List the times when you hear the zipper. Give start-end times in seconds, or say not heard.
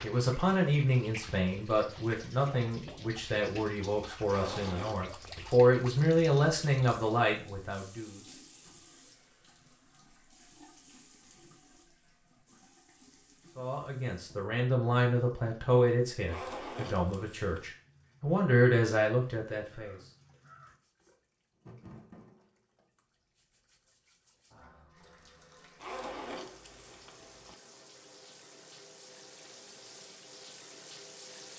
4.2-5.5, 16.2-17.8, 25.8-27.6.